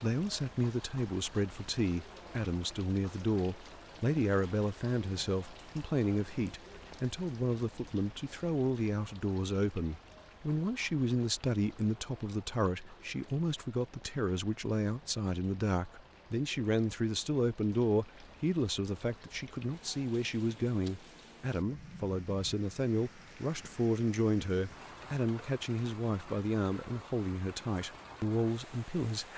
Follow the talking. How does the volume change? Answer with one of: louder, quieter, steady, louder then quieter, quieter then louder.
steady.